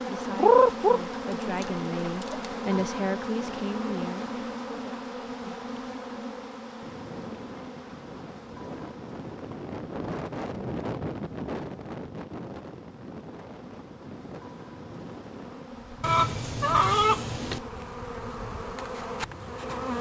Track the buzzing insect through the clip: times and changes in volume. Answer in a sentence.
You can hear the buzzing insect from 0.0 to 19.9 s, getting quieter then louder.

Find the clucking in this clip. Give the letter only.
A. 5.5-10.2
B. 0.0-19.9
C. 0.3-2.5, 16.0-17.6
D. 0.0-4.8
C.